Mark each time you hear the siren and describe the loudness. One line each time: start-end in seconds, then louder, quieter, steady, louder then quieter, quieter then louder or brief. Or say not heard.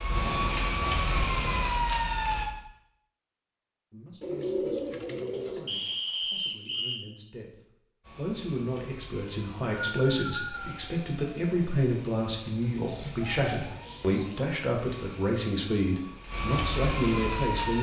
0.0-2.5 brief
8.0-17.7 louder.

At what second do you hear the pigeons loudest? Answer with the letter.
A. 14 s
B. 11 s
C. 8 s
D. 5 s
D.